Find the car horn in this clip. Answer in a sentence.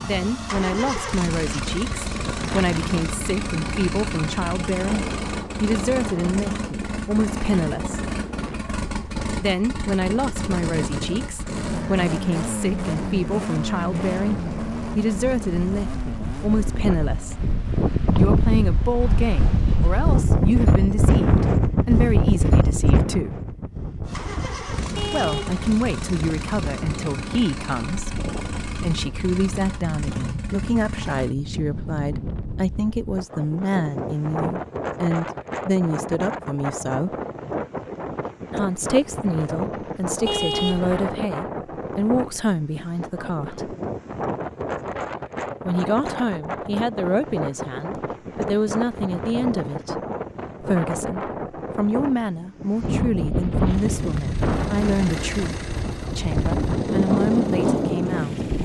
You can hear the car horn from 24.9 to 25.7 s and from 40.2 to 41.1 s.